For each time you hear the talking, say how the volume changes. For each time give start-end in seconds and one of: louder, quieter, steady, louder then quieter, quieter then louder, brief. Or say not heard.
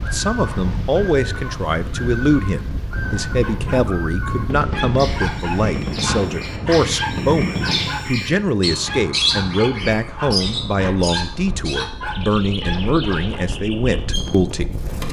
0.0-14.9 steady.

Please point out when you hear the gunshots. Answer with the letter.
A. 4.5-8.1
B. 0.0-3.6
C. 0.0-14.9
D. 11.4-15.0
A.